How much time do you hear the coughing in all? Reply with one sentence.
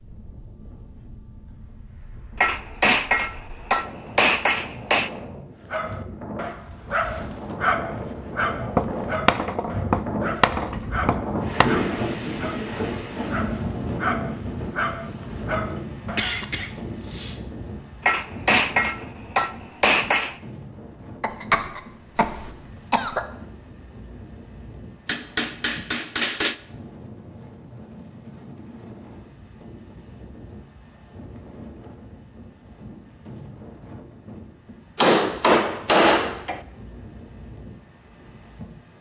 The coughing can be heard for 3 seconds in total.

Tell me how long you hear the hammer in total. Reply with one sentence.
The hammer can be heard for 11 seconds in total.